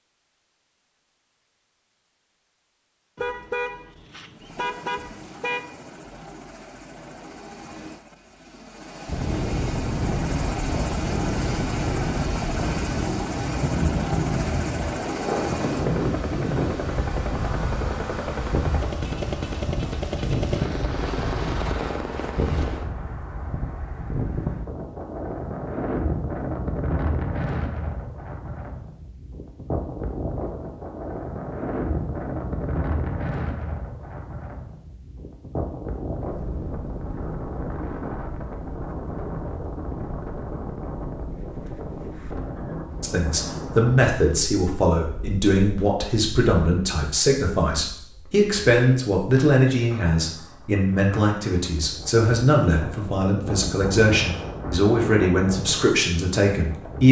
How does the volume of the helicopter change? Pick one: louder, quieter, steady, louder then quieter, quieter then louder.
louder.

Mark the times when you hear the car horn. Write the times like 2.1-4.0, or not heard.
3.1-5.7.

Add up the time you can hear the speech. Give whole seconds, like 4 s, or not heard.
14 s.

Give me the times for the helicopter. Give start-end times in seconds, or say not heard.
4.3-22.9.